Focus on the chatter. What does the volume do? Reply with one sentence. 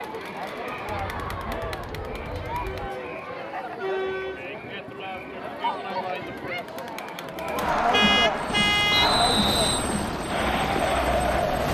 The volume of the chatter goes up.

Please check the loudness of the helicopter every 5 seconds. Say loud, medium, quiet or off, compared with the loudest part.
off, loud, loud.